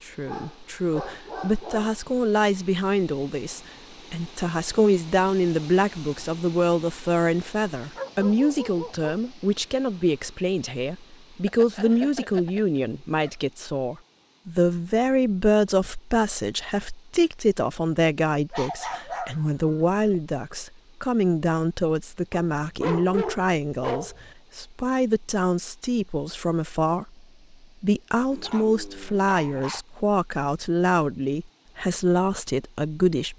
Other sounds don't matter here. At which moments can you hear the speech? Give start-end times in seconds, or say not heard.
0.1-27.1, 27.8-33.3.